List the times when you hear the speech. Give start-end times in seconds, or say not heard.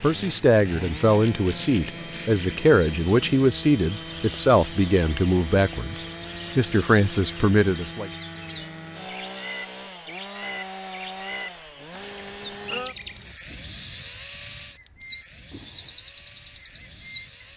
0.0-8.1.